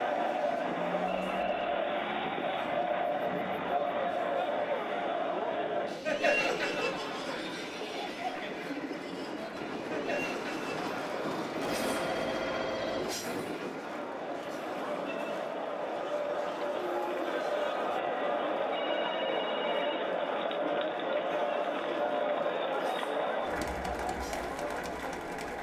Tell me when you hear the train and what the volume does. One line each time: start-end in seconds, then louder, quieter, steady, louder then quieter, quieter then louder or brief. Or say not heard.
0.0-25.5 louder then quieter.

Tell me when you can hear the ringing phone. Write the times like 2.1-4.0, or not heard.
1.1-1.7, 11.6-13.3, 18.7-20.0.